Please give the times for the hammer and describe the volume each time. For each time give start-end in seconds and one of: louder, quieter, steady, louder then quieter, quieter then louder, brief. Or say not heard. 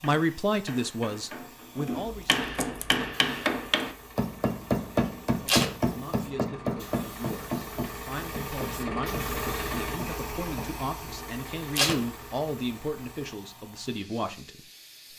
0.0-10.7 louder then quieter.